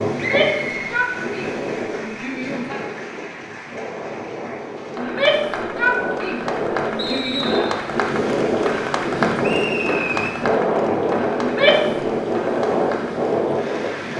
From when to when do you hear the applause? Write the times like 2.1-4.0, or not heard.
0.0-14.1.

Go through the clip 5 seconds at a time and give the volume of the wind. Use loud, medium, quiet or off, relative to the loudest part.
medium, loud, loud.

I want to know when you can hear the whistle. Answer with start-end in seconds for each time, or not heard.
0.2-1.0, 7.0-7.8, 9.4-10.3.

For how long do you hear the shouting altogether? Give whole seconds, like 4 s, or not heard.
6 s.